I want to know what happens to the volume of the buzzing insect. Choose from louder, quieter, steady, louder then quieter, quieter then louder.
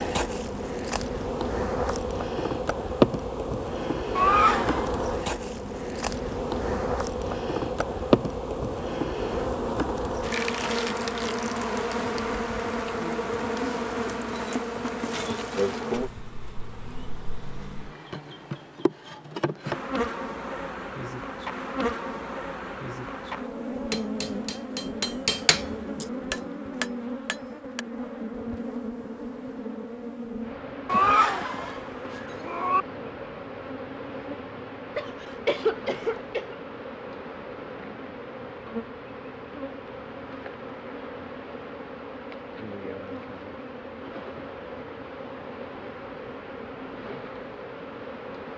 quieter.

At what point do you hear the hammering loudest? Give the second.
25 s.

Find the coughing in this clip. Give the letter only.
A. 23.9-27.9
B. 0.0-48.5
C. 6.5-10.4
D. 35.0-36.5
D.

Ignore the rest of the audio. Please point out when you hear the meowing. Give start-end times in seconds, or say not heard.
4.2-4.9, 30.9-32.9.